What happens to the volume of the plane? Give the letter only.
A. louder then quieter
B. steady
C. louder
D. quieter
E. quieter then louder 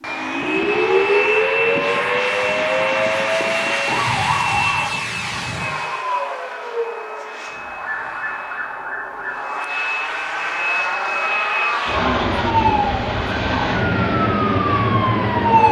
E.